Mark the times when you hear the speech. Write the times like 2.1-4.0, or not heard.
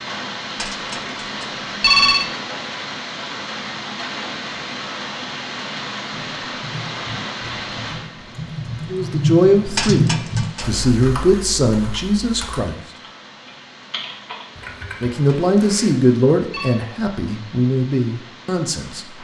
8.9-12.8, 15.0-19.1.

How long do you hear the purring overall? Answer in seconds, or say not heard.
not heard.